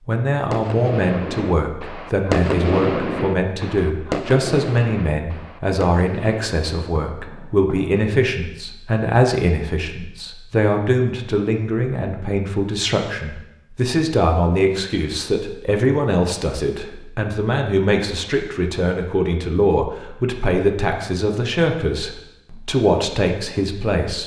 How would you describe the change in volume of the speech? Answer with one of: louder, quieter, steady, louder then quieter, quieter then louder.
steady.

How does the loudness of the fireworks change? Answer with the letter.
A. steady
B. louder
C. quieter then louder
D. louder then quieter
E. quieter
D.